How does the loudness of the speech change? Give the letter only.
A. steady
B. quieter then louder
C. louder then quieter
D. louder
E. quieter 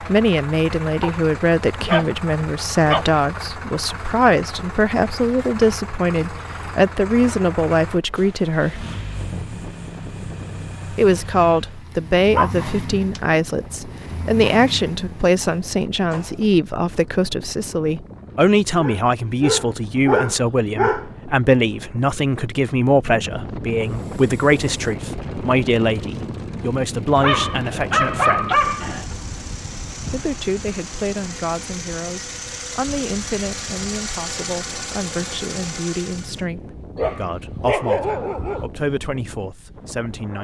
E.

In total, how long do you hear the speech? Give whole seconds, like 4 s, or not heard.
37 s.